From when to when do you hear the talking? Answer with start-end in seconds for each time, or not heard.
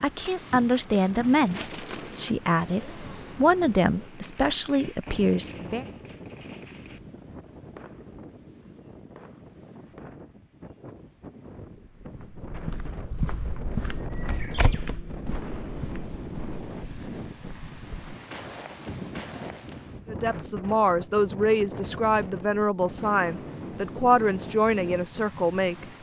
0.0-5.8, 20.1-25.9.